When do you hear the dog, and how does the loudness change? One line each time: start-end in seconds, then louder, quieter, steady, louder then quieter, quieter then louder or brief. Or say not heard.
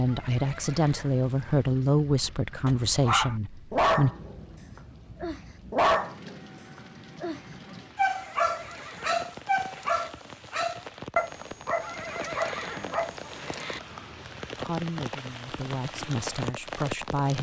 2.6-4.3 brief
5.2-6.3 brief
7.2-13.3 quieter.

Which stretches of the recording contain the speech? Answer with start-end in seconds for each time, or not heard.
0.0-4.1, 14.6-17.3.